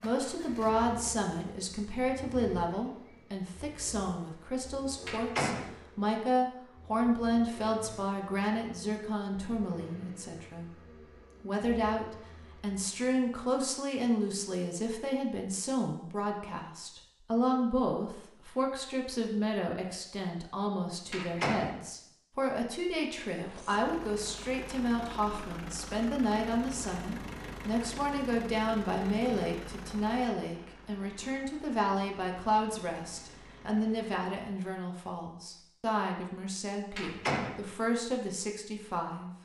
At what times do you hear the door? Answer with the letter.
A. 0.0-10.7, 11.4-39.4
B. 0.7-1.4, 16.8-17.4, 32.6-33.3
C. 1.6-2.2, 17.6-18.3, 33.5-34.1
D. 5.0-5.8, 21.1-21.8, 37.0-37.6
D.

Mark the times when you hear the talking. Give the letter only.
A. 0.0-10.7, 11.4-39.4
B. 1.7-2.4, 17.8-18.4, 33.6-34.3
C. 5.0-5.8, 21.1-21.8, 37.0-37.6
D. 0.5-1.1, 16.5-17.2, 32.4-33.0
A.